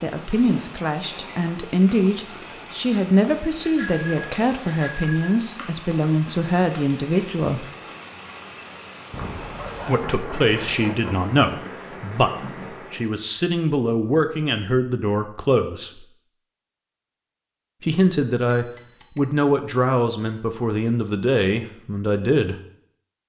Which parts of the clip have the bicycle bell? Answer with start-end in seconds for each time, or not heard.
3.6-5.4, 9.1-10.9, 18.4-19.3.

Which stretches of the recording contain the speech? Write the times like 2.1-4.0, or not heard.
0.0-7.7, 9.8-16.1, 17.8-22.6.